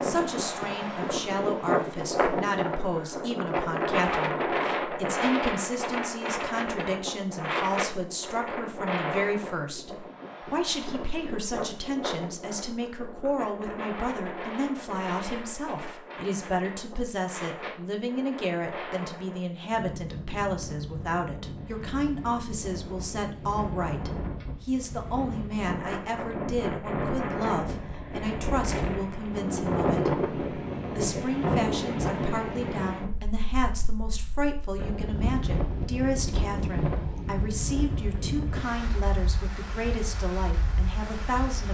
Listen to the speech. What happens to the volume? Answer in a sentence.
The loudness of the speech stays about the same.